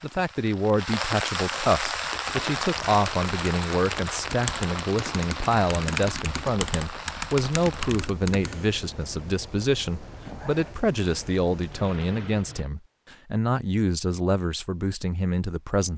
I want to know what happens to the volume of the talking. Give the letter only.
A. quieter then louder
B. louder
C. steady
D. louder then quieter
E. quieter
C.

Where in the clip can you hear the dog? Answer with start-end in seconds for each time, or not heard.
not heard.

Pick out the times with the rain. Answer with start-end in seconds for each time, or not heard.
0.0-12.7.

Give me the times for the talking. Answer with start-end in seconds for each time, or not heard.
0.0-15.9.